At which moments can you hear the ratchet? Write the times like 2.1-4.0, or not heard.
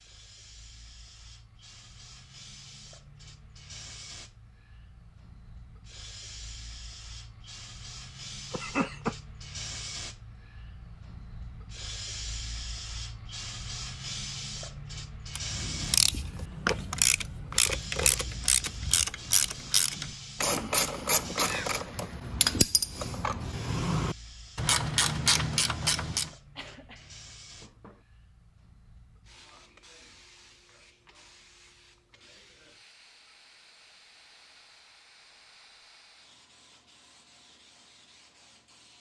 15.3-26.3.